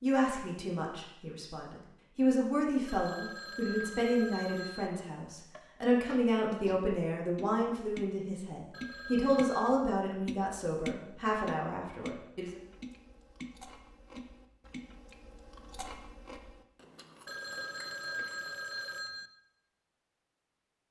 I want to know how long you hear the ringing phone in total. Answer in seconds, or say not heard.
5 s.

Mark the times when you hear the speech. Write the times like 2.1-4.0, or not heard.
0.0-12.6.